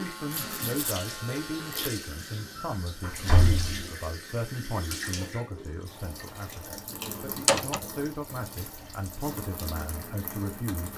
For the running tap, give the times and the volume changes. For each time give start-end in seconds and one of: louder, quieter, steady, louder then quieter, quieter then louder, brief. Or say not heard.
0.0-10.9 steady.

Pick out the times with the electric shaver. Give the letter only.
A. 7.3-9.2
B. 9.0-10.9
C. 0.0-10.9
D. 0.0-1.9
D.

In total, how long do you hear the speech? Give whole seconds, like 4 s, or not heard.
11 s.